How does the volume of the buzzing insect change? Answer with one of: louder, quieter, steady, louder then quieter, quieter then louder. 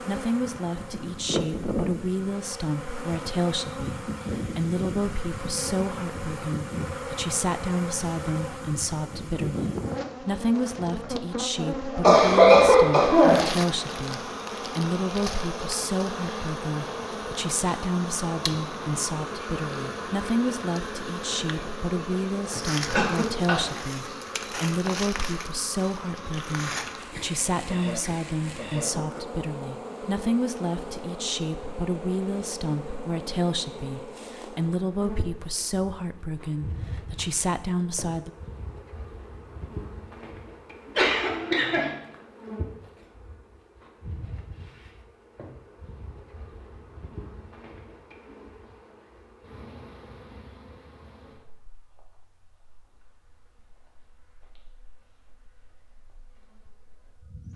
quieter.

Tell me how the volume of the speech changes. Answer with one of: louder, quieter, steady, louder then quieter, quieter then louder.
steady.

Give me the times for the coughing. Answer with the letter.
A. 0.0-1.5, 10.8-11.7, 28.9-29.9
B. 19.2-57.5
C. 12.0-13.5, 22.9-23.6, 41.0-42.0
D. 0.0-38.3
C.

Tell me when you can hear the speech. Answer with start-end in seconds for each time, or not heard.
0.0-38.3.